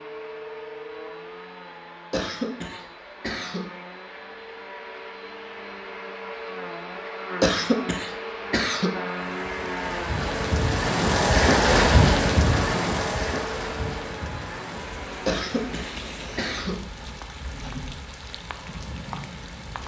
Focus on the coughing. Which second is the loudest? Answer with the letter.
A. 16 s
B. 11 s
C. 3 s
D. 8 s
D.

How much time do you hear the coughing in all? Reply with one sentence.
The coughing can be heard for 5 seconds in total.